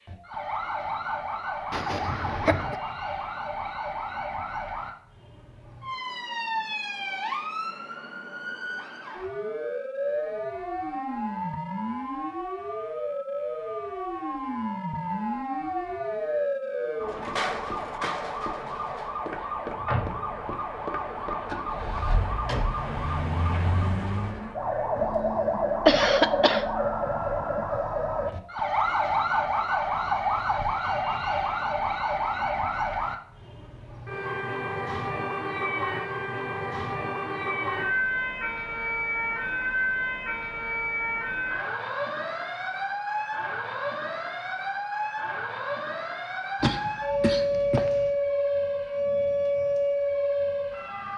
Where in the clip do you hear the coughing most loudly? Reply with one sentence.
The volume of the coughing peaks at 26 seconds.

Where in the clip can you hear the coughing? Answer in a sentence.
The coughing can be heard from 1.7 to 2.8 s, from 25.9 to 26.6 s and from 46.6 to 48.1 s.